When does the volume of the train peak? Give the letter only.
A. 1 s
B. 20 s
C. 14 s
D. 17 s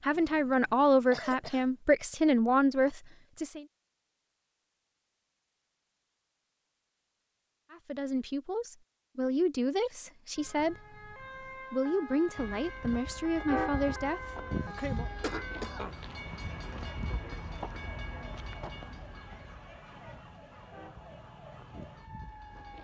C.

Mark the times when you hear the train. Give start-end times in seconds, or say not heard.
12.3-22.7.